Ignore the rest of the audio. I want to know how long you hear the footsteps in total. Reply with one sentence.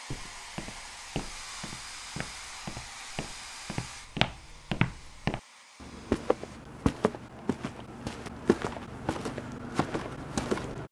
You can hear the footsteps for 11 seconds altogether.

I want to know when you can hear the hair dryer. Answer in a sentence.
The hair dryer can be heard from 0.0 to 6.6 s.